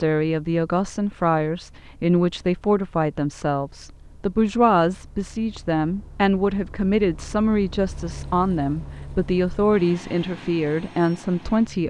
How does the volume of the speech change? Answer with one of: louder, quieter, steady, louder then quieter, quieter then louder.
steady.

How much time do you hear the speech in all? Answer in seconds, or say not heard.
12 s.